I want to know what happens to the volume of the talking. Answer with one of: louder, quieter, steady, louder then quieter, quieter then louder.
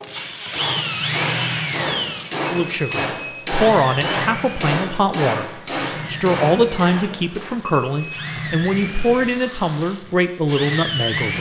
steady.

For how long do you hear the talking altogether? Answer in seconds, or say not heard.
9 s.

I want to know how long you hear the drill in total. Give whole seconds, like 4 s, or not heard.
11 s.